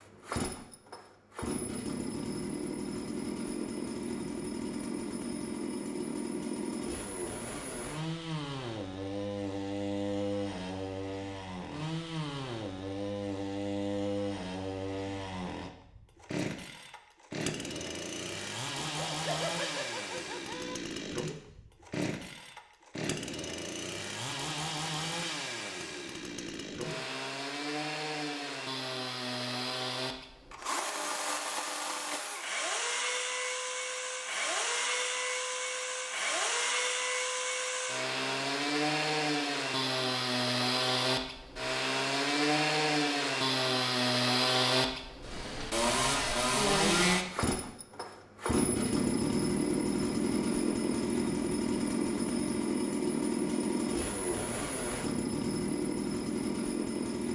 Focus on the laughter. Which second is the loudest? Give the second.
19 s.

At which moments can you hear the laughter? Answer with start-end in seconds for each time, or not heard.
19.0-20.8.